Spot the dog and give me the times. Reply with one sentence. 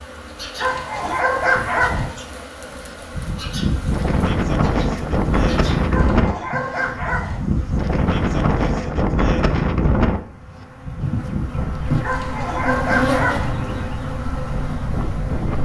You can hear the dog from 0.6 to 2.1 s, from 5.8 to 7.4 s and from 12.0 to 13.5 s.